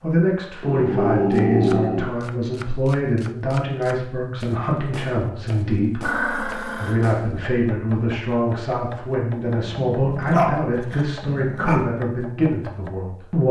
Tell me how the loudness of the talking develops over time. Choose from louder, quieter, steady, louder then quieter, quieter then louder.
steady.